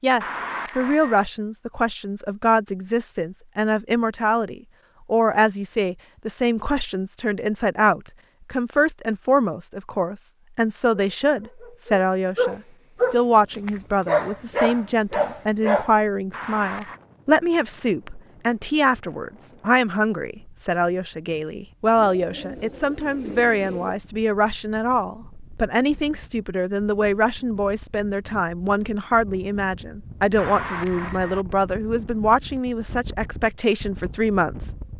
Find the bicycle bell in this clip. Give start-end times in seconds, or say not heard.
0.2-1.2, 16.3-17.0, 30.4-31.4.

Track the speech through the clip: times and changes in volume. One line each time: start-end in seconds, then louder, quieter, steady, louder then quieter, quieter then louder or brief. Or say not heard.
0.0-34.7 steady.